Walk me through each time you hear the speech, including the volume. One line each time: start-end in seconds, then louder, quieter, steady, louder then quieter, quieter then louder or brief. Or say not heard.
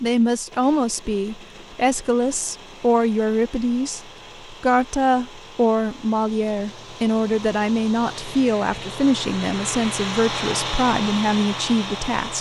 0.0-12.3 steady.